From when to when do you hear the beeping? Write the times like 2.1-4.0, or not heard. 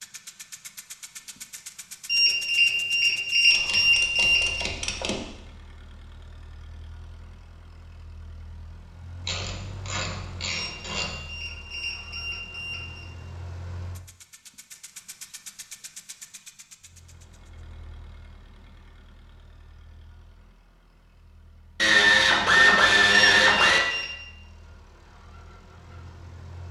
2.0-4.7, 10.4-13.1, 23.1-24.1.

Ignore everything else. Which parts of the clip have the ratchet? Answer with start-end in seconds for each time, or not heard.
3.5-5.2, 9.2-11.2, 21.8-23.8.